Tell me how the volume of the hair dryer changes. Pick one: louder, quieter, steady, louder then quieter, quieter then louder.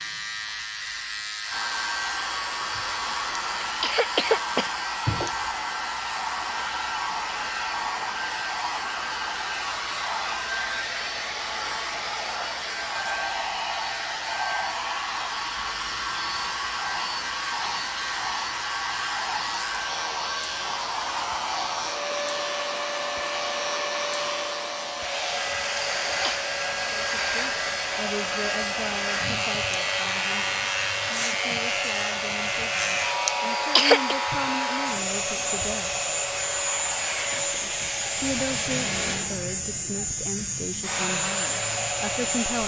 steady.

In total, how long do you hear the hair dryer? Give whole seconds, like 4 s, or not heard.
41 s.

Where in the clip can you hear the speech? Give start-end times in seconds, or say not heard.
26.9-35.9, 37.3-42.6.